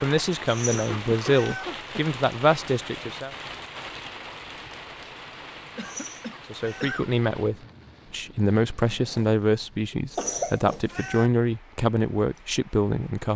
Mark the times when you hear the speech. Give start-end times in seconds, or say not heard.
0.0-3.3, 6.5-13.3.